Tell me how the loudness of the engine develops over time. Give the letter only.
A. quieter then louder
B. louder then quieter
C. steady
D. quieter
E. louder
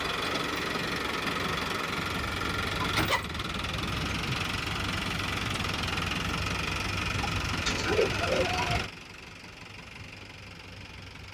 D.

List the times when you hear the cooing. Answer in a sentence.
You can hear the cooing from 7.5 to 8.9 s.